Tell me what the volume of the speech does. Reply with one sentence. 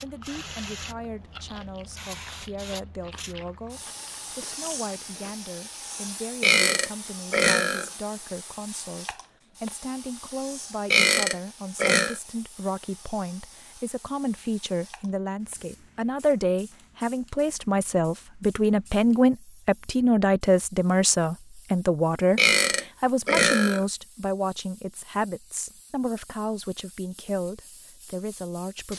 The volume of the speech goes up, then down.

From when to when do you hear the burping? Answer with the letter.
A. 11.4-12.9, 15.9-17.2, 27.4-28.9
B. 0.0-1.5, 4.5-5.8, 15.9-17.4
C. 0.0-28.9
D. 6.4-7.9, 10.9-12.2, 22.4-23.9
D.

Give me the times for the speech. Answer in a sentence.
You can hear the speech from 0.0 to 28.9 s.